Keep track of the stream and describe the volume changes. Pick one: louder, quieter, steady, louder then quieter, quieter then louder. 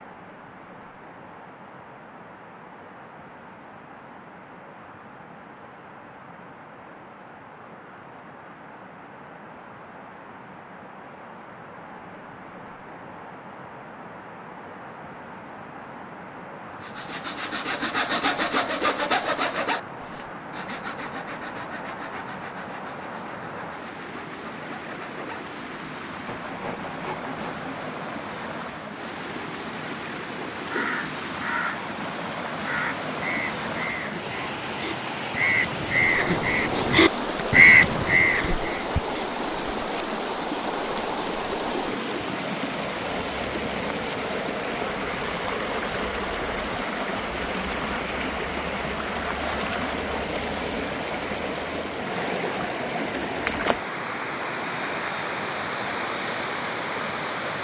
louder.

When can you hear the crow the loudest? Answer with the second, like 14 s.
38 s.